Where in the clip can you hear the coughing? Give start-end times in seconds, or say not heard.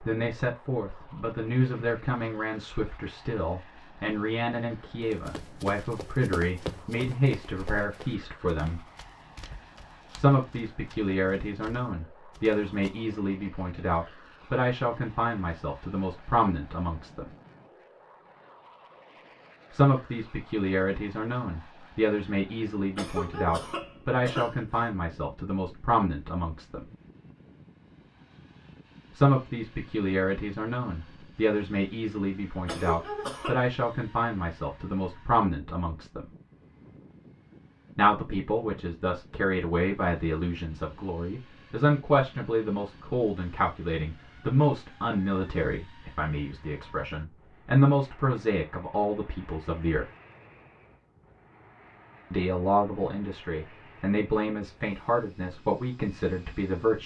22.9-24.9, 32.6-33.6.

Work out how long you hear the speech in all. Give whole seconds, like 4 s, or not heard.
47 s.